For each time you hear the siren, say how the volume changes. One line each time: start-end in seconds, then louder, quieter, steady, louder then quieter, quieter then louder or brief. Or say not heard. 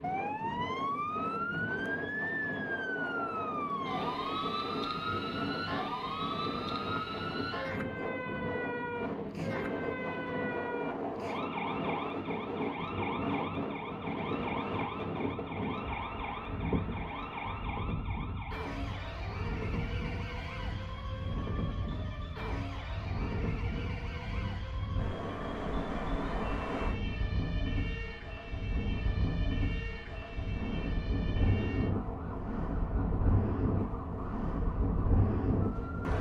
0.0-36.1 quieter.